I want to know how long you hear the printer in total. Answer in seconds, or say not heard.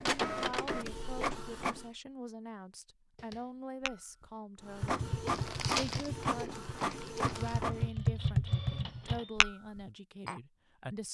7 s.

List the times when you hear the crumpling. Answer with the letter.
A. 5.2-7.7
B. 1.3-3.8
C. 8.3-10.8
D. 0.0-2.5
A.